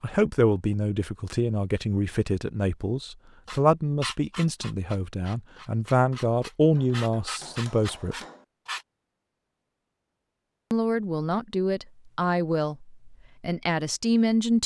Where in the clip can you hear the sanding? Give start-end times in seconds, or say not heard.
3.5-8.8.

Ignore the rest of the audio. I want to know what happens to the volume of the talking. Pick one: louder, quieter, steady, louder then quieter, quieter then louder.
steady.